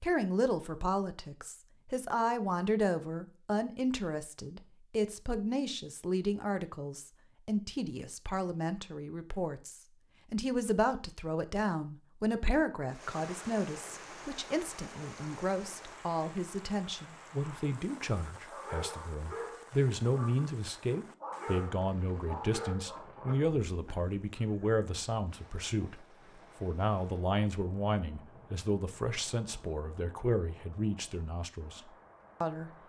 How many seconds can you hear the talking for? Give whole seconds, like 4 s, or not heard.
33 s.